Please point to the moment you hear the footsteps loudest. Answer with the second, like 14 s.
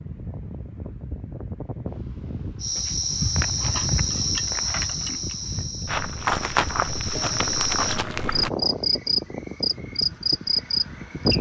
6 s.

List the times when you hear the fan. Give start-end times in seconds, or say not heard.
0.0-11.3.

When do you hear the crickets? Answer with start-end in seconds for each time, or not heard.
2.6-11.3.